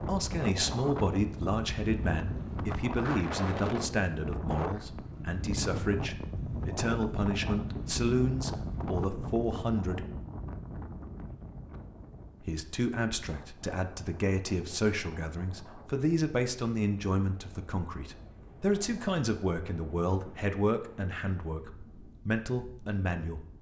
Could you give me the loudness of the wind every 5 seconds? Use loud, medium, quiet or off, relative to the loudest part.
loud, loud, medium, quiet, quiet.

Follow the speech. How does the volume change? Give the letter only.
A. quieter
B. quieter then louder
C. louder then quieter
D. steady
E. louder
D.